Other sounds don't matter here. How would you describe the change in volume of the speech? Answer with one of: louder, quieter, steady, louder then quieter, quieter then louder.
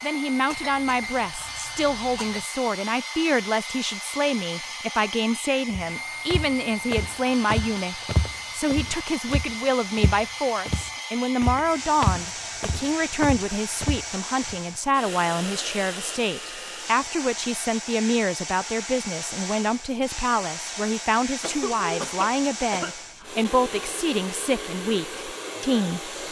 steady.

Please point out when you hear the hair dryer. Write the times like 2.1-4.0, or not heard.
0.0-26.2.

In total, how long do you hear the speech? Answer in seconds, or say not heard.
26 s.